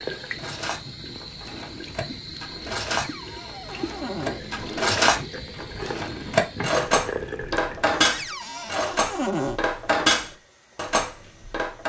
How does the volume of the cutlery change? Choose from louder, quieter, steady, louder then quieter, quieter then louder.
louder.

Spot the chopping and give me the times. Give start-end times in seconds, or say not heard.
not heard.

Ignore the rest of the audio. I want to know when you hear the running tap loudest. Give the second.
7 s.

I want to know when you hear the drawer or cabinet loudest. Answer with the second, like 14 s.
9 s.